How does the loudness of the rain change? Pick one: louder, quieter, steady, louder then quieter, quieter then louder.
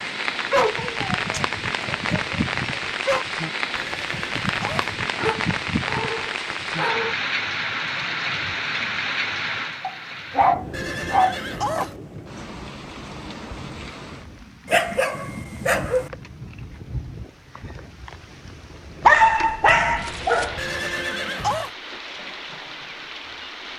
quieter.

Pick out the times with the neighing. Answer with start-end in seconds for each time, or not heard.
3.7-4.8, 10.7-12.0, 20.6-21.7.